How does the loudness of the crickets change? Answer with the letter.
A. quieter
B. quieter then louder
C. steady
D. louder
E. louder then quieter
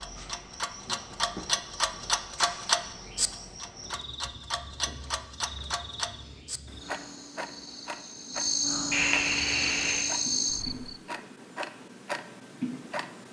D.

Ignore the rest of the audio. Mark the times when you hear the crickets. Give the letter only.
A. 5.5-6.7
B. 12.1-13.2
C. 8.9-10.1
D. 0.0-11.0
D.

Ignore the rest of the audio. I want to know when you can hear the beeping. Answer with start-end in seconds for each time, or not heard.
8.9-10.1.